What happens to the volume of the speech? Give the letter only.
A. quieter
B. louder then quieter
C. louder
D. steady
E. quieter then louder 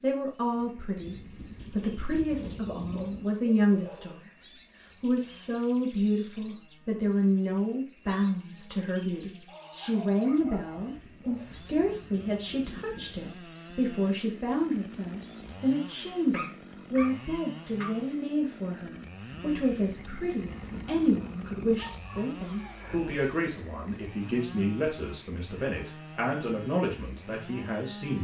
D.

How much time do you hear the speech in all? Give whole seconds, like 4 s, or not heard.
27 s.